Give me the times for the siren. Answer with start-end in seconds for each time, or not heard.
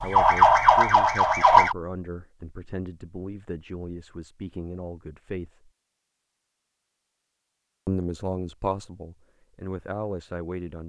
0.0-1.8.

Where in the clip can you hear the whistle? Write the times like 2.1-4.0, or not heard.
not heard.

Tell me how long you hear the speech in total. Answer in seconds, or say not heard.
9 s.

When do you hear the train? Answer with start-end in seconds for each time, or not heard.
not heard.